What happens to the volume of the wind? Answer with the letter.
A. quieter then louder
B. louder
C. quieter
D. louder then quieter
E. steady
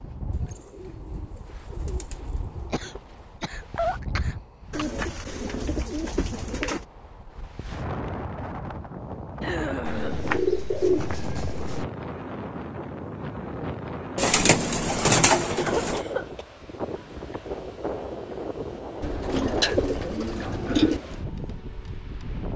B.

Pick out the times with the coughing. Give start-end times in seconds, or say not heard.
2.7-4.8, 9.4-10.3, 15.3-16.4.